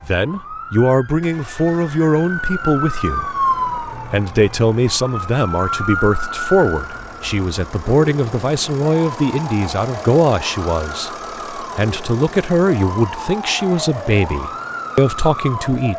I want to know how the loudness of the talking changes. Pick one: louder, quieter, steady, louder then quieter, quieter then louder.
steady.